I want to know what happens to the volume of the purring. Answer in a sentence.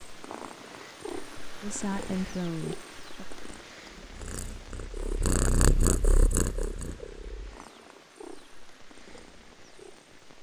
The volume of the purring goes up, then down.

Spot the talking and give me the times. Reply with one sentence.
You can hear the talking from 1.6 to 3.2 s.